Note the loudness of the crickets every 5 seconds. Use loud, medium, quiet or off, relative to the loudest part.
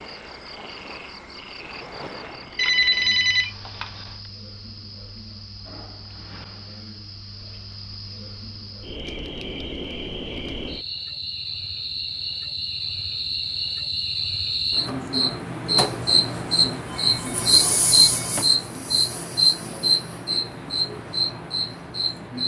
quiet, quiet, medium, loud, medium.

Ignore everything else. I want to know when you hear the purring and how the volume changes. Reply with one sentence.
The purring can't be heard in this clip.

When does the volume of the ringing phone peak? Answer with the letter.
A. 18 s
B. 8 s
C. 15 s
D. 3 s
D.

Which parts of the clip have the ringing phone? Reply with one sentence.
The ringing phone can be heard from 2.5 to 4.2 s and from 16.9 to 18.4 s.